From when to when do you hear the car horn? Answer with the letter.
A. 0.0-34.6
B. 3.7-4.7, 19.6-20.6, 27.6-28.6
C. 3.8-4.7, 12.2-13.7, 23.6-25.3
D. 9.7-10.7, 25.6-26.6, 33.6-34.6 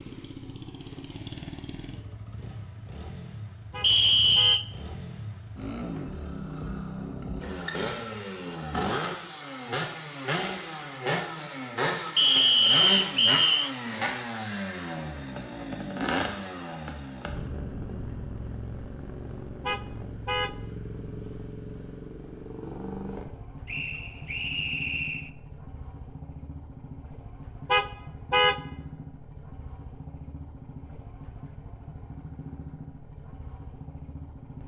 B.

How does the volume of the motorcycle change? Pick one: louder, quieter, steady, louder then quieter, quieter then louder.
louder then quieter.